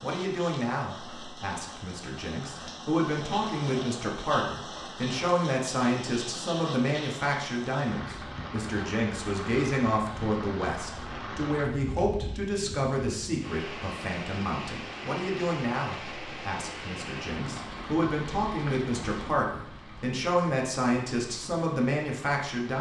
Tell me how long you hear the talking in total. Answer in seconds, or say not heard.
23 s.